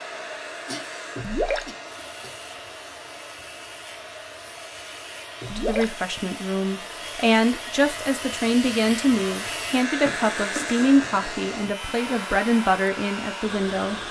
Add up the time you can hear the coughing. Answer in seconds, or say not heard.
2 s.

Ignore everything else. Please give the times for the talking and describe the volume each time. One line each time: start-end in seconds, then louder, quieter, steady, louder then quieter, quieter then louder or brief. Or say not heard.
5.5-14.0 steady.